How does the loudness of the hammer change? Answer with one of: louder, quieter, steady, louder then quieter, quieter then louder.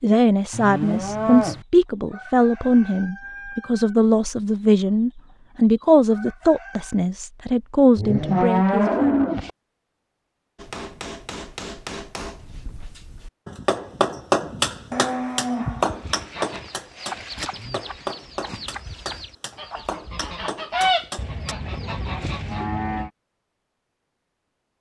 louder then quieter.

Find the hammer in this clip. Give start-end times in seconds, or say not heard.
10.6-21.6.